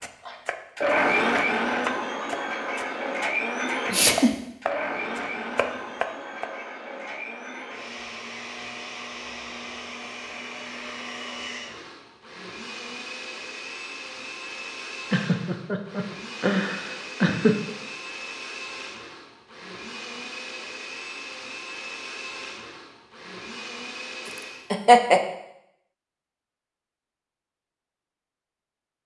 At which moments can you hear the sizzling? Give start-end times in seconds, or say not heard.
not heard.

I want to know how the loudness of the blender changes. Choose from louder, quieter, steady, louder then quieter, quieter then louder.
quieter.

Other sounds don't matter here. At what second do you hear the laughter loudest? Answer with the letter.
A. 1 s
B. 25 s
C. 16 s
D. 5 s
B.